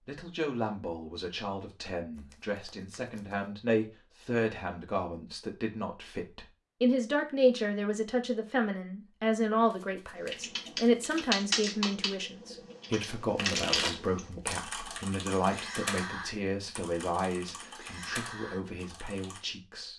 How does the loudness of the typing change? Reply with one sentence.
The loudness of the typing goes down.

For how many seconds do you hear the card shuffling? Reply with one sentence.
The card shuffling can be heard for 4 seconds in total.